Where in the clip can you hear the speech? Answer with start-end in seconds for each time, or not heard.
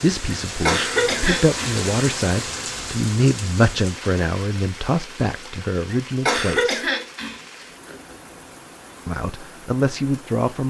0.0-6.8, 9.1-10.6.